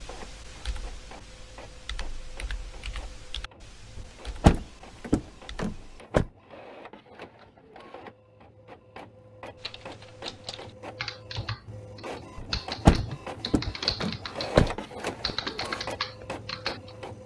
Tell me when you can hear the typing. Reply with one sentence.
You can hear the typing from 0.0 to 6.0 s and from 9.6 to 16.9 s.